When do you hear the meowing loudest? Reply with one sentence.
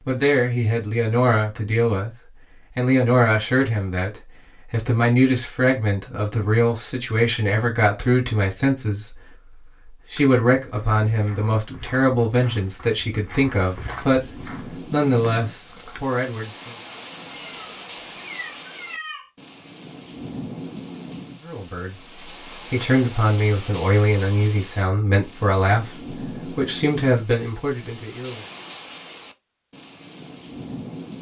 The volume of the meowing peaks at 19 seconds.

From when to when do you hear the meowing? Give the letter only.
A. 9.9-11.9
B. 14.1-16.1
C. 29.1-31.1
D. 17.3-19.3
D.